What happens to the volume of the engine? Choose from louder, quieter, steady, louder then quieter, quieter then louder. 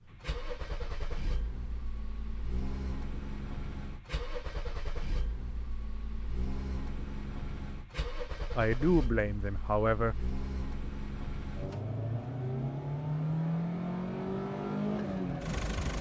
louder.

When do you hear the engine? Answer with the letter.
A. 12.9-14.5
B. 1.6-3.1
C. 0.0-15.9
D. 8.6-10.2
C.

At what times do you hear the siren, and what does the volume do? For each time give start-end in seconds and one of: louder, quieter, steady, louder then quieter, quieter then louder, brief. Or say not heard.
not heard.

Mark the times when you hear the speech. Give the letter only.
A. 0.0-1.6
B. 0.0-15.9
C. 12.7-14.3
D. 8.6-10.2
D.